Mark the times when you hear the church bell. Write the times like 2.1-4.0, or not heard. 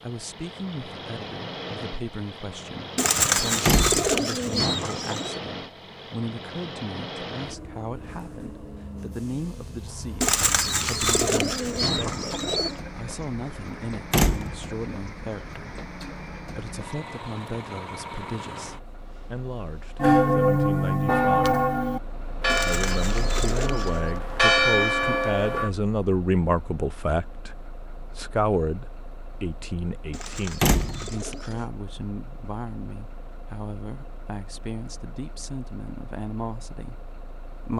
20.0-25.7.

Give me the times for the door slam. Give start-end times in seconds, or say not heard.
3.6-4.2, 14.1-14.7, 30.6-31.1.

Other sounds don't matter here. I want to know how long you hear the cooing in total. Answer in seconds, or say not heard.
8 s.